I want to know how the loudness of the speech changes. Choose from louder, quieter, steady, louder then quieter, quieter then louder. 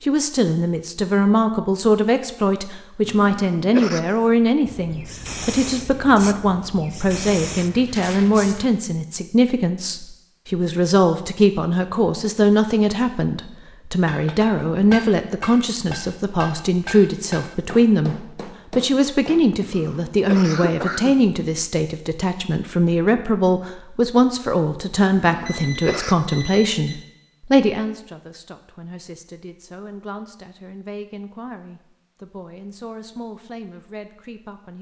quieter.